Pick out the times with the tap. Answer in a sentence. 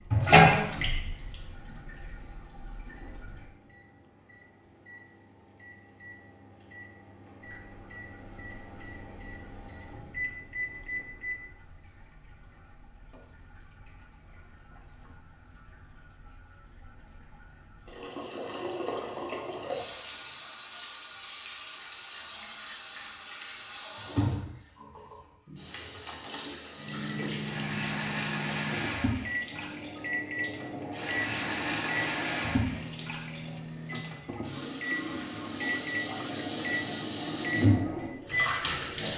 The tap can be heard from 0.0 to 3.5 s and from 7.4 to 39.1 s.